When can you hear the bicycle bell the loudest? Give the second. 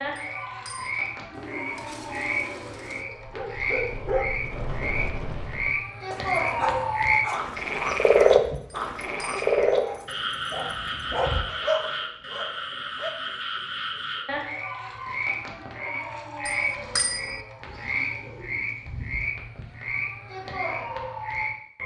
17 s.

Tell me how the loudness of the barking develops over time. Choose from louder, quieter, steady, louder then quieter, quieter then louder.
quieter then louder.